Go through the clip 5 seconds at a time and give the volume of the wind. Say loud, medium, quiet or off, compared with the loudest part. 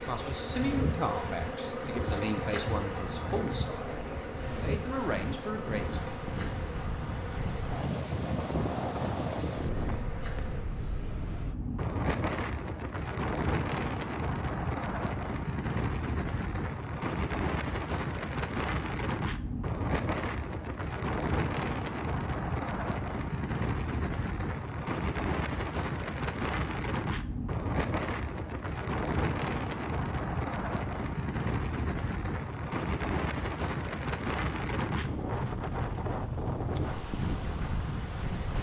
medium, loud, loud, loud, loud, loud, loud, loud.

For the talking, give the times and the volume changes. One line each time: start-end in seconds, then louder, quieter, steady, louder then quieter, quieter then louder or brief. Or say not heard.
0.0-6.0 quieter then louder.